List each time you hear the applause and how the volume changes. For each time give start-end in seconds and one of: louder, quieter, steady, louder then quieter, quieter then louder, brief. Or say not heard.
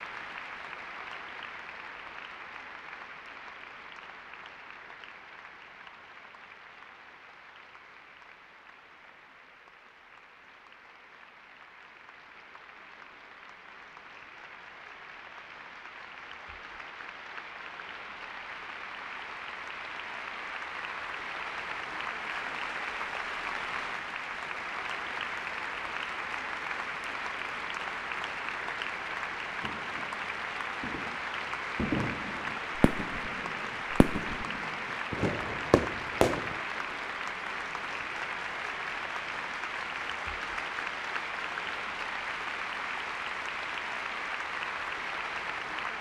0.0-45.9 louder.